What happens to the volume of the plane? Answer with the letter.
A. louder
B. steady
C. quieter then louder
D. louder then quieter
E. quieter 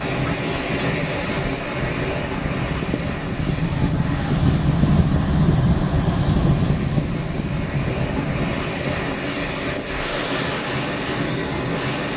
D.